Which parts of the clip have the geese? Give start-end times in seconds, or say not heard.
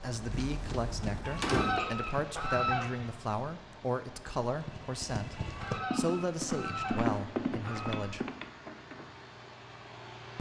1.2-3.1, 5.3-8.1.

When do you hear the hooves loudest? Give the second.
7 s.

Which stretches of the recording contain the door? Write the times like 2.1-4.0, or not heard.
0.3-1.8.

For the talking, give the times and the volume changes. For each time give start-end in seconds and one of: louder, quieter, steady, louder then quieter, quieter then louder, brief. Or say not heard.
0.0-8.2 steady.